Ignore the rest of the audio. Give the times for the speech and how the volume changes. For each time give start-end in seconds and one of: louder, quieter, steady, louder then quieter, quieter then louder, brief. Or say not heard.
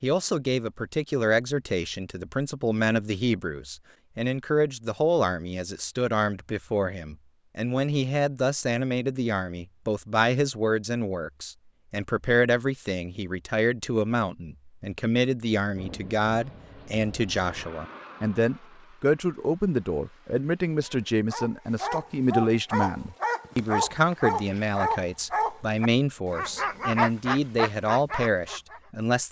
0.0-29.2 steady.